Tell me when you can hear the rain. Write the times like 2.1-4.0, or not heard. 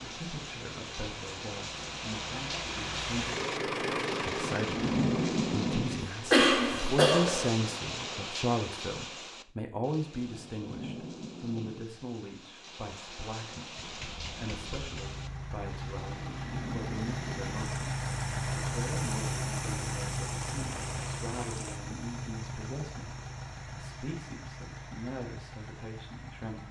0.0-21.8.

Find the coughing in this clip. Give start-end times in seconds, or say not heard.
6.3-7.5.